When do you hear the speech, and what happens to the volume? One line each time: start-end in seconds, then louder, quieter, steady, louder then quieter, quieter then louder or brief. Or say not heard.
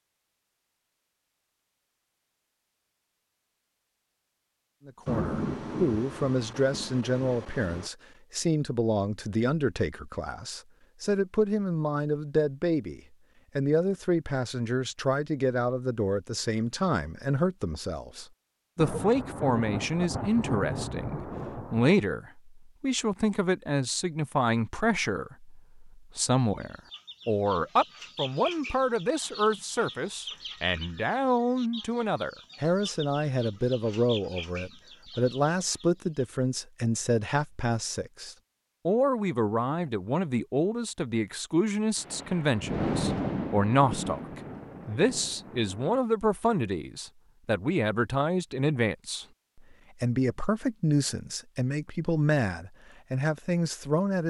4.8-54.2 steady.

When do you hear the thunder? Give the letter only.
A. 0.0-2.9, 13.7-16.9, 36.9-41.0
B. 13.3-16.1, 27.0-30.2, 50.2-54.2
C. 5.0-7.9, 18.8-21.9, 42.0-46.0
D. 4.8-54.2
C.